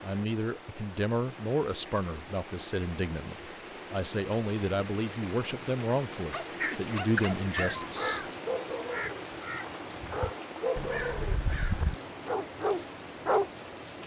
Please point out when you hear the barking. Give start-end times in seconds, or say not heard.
6.3-13.5.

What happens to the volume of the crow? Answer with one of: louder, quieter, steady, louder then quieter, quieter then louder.
quieter then louder.